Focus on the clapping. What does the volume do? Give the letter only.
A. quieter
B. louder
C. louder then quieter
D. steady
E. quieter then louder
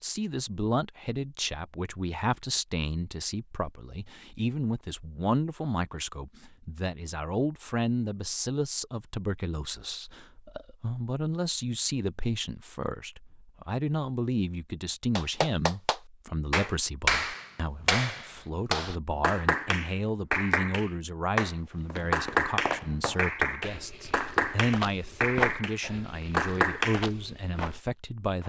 D.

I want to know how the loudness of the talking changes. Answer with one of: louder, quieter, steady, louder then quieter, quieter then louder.
steady.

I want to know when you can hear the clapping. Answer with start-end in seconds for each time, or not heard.
15.2-27.1.